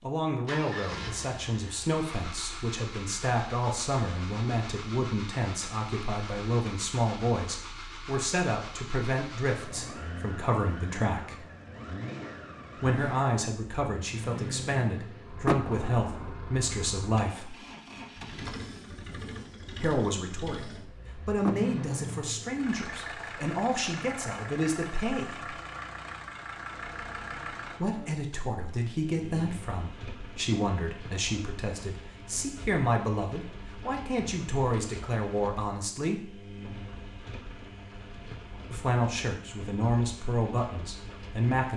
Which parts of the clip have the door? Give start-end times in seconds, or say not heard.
15.4-16.3, 21.4-22.1.